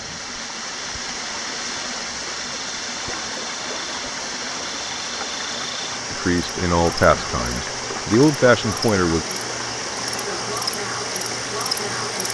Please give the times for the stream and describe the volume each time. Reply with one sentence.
You can hear the stream from 0.0 to 12.2 s, at a steady volume.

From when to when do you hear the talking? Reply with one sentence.
The talking can be heard from 6.1 to 9.2 s.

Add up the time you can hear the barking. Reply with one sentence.
You can't hear the barking here.